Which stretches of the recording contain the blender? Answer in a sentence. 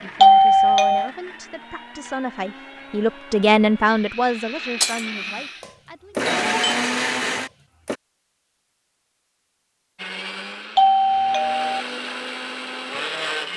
The blender can be heard from 0.0 to 8.0 s and from 9.9 to 13.5 s.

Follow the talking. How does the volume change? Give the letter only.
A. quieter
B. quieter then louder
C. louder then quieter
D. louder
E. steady
C.